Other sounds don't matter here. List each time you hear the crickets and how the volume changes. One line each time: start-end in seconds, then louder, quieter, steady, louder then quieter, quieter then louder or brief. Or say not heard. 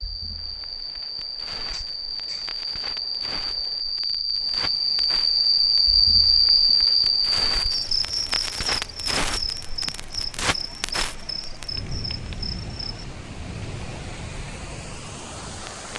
0.0-13.1 louder then quieter.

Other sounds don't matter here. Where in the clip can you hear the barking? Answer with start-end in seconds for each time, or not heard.
not heard.